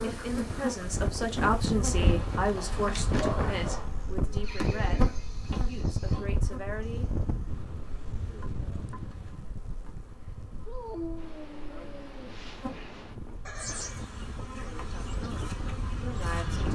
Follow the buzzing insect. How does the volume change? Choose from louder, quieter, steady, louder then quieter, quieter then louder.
quieter then louder.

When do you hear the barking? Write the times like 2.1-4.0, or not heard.
2.5-4.0, 10.7-12.3.